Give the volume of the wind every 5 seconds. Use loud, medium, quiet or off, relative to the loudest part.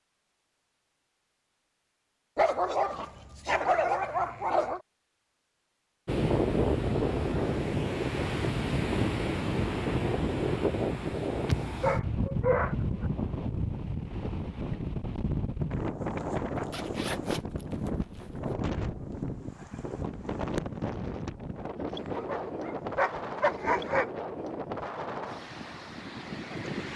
off, loud, loud, medium, medium, medium.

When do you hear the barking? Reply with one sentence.
The barking can be heard from 2.4 to 4.8 s, from 11.8 to 13.1 s and from 22.1 to 24.1 s.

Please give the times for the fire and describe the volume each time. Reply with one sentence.
The fire can't be heard in this clip.